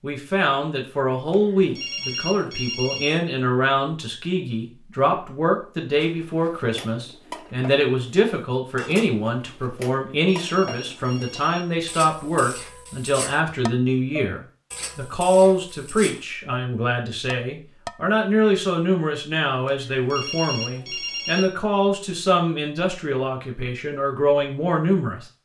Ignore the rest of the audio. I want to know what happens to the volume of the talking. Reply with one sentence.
The volume of the talking stays about the same.